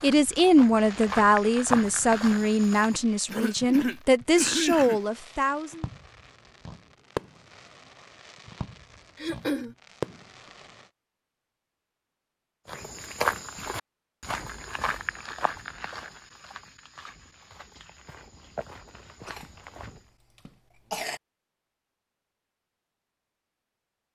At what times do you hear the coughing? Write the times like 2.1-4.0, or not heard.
3.3-5.0, 9.2-9.8, 19.2-21.2.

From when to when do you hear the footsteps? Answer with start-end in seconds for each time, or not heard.
0.0-3.0, 12.7-20.1.